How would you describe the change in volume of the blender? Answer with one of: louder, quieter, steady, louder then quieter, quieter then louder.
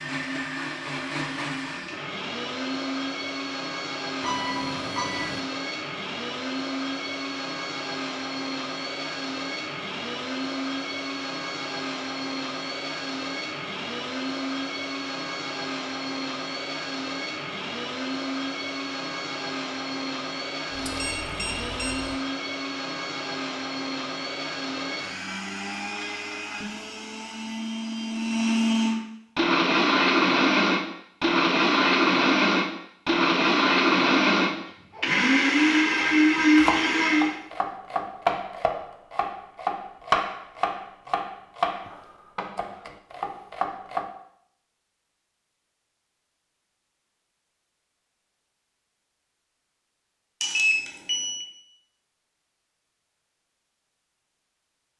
louder.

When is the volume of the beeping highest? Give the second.
51 s.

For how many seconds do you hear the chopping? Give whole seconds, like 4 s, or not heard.
8 s.